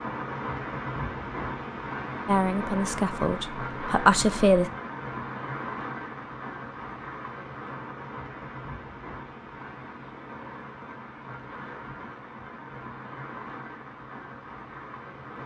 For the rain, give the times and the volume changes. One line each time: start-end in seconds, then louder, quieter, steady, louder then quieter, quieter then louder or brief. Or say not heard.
0.0-15.4 quieter.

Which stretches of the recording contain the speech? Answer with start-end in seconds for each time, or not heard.
2.2-4.7.